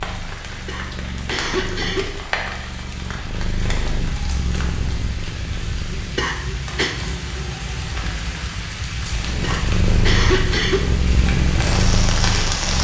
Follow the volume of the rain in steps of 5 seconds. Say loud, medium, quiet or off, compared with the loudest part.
medium, medium, loud.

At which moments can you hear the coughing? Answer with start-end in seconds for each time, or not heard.
0.7-2.0, 6.2-7.0, 9.4-10.8.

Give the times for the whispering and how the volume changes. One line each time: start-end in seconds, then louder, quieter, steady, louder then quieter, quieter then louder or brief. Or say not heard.
not heard.